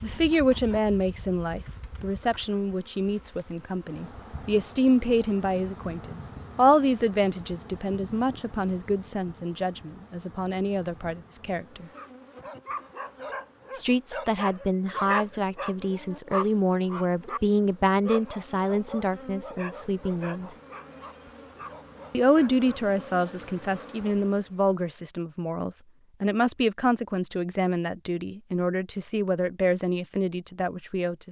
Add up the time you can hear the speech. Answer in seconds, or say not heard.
28 s.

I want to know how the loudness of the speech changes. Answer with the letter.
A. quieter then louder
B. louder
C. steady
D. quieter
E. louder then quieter
C.